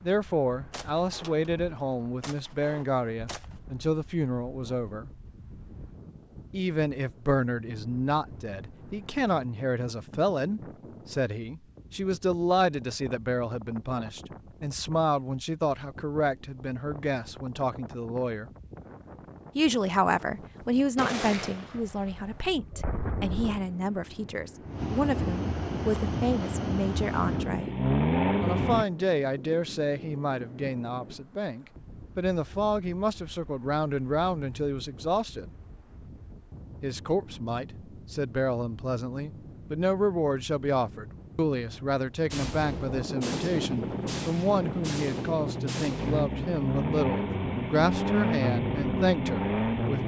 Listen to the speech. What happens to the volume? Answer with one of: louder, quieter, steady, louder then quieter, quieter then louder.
steady.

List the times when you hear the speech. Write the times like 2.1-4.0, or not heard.
0.0-5.1, 6.5-18.5, 19.6-27.7, 28.4-35.5, 36.8-50.0.